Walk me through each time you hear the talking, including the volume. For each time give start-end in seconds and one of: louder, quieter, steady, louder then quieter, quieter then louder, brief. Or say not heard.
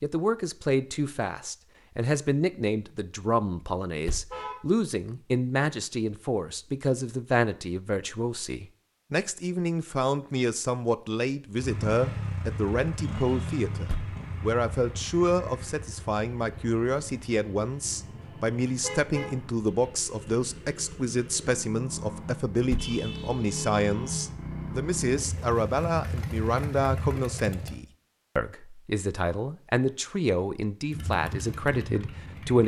0.0-32.6 steady.